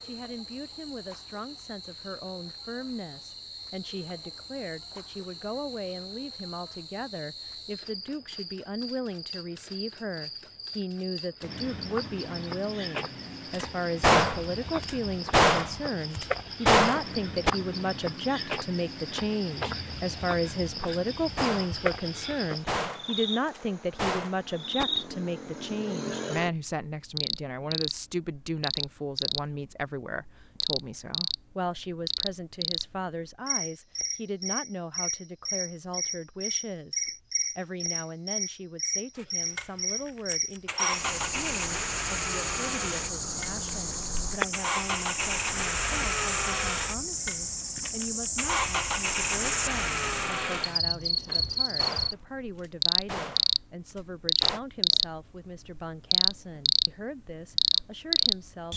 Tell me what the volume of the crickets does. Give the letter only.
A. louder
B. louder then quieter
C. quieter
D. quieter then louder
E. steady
A.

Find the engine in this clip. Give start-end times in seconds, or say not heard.
39.1-50.8.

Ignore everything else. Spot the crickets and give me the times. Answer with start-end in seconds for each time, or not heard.
0.0-58.7.